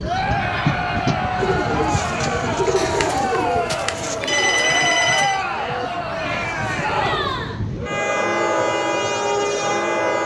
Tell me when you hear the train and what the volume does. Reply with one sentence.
The train can be heard from 0.0 to 10.2 s, getting quieter then louder.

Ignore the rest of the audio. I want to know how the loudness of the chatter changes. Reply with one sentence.
The volume of the chatter stays about the same.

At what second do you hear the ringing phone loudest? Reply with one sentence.
The volume of the ringing phone peaks at 5 seconds.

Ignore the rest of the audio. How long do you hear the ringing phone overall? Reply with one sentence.
You can hear the ringing phone for 3 seconds altogether.